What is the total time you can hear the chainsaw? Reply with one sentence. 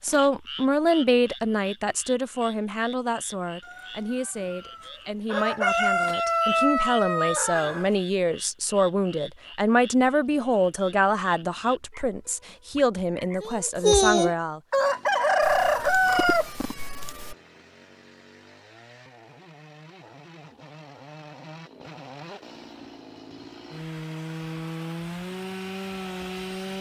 The chainsaw can be heard for 12 seconds in total.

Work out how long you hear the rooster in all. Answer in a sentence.
You can hear the rooster for 6 seconds altogether.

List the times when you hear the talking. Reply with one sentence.
You can hear the talking from 0.0 to 14.6 s.